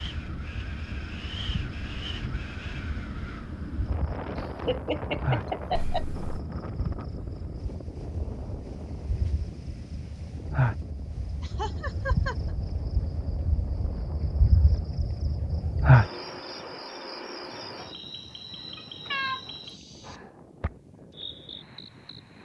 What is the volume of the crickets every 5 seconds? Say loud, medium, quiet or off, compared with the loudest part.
quiet, medium, medium, loud, quiet.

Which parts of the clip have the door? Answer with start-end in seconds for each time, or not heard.
not heard.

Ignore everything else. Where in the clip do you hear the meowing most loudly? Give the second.
19 s.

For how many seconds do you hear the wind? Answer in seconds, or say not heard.
22 s.